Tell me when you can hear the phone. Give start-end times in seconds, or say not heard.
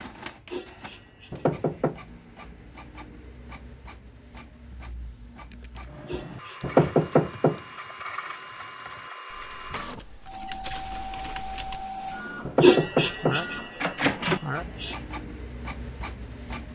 not heard.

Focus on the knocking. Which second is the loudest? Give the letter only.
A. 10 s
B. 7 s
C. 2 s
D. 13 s
B.